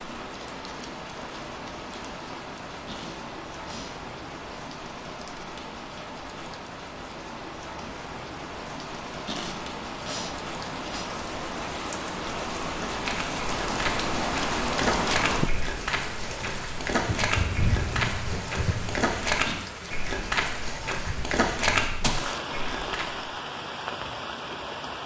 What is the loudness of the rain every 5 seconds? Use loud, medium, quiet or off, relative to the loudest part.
medium, medium, loud, loud, medium.